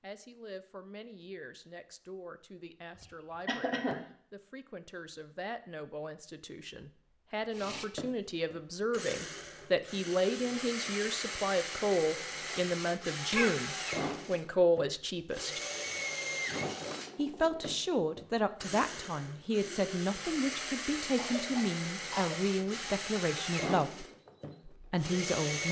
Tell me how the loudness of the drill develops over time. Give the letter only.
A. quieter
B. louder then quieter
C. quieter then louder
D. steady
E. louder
D.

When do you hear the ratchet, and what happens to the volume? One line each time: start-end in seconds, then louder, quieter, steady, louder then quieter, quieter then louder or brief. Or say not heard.
not heard.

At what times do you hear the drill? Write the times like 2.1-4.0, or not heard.
7.5-25.6.